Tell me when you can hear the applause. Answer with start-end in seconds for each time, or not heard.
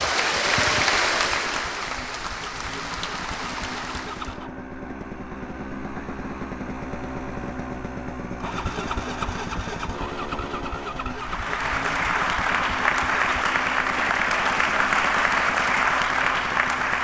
0.0-4.4, 11.2-16.9.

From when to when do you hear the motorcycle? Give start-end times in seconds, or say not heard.
0.0-16.9.